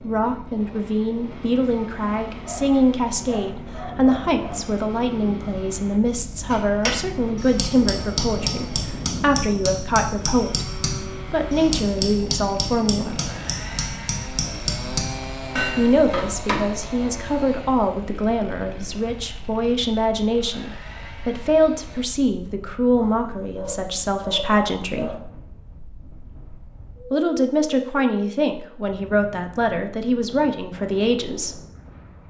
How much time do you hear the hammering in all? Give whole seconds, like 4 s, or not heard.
10 s.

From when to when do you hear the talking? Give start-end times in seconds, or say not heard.
0.0-10.7, 11.3-13.2, 15.8-25.1, 27.1-31.6.